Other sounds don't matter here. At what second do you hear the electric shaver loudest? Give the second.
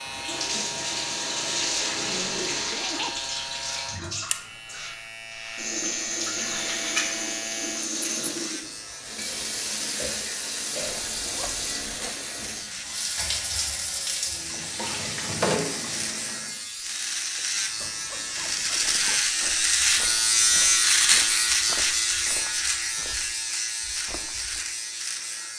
21 s.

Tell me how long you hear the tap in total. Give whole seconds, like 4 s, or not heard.
17 s.